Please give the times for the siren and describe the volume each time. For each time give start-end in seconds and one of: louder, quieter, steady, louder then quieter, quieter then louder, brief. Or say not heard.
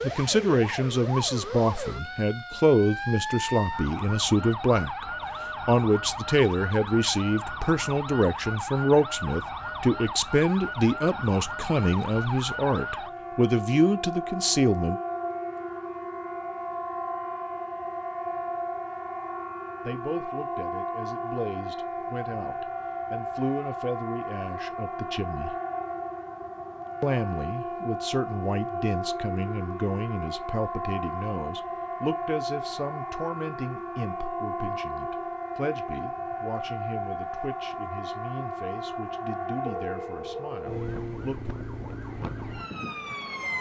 0.0-43.5 steady.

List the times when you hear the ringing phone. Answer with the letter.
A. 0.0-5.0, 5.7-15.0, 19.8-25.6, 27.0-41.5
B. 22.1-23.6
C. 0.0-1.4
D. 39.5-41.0
D.